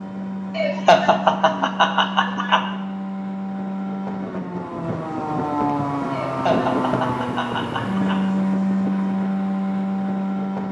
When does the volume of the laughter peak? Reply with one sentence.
The volume of the laughter peaks at 1 second.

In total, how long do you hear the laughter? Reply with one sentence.
You can hear the laughter for 4 seconds altogether.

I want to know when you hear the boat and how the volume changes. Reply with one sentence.
You can hear the boat from 0.0 to 10.6 s, getting louder.